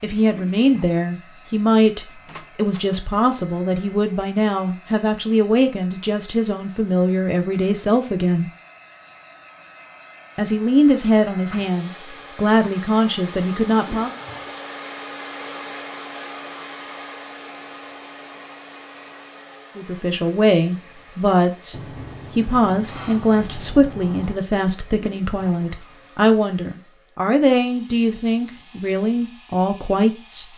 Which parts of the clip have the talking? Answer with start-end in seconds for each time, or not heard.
0.0-8.4, 10.3-14.1, 19.8-30.4.